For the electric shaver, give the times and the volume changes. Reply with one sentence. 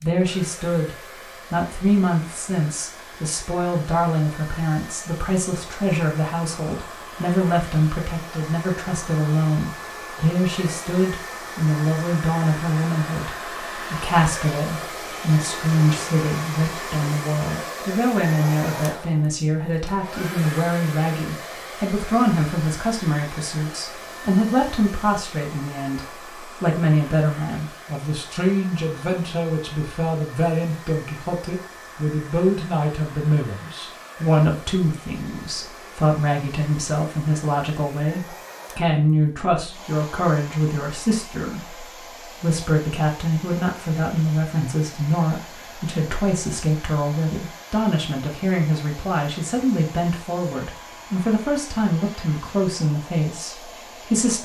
The electric shaver can't be heard in this clip.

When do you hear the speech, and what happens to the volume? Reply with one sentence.
You can hear the speech from 0.0 to 54.4 s, at a steady volume.